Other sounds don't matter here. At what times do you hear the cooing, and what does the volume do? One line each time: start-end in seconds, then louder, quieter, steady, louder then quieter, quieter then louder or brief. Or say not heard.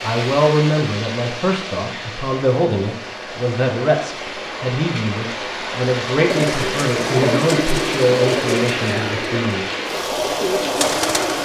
6.3-11.4 quieter then louder.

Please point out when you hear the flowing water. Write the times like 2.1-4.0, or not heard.
0.0-11.4.